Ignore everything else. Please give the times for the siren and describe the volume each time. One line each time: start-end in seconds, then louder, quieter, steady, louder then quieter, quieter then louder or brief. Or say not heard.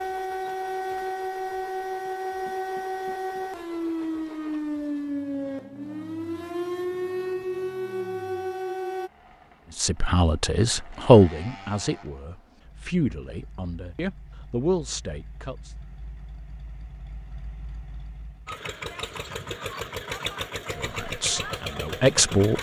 0.0-9.1 steady.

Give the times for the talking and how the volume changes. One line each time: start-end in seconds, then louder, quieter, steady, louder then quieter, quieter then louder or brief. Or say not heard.
9.8-15.7 quieter then louder
20.8-22.5 brief.